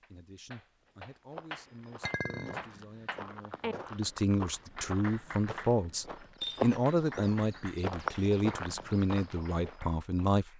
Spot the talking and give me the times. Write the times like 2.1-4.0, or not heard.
0.0-10.5.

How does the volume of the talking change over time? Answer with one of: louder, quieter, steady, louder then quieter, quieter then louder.
louder.